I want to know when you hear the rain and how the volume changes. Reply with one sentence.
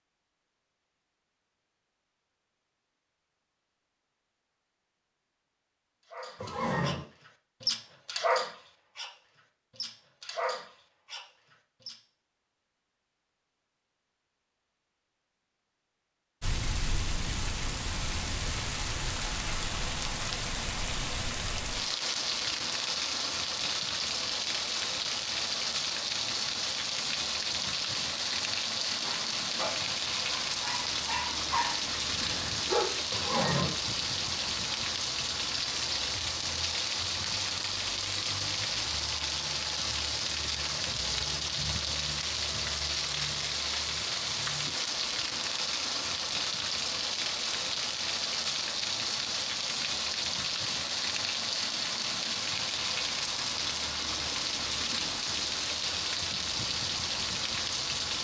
You can hear the rain from 16.4 to 58.1 s, at a steady volume.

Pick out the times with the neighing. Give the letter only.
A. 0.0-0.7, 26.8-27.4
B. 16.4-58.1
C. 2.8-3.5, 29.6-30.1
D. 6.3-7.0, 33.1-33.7
D.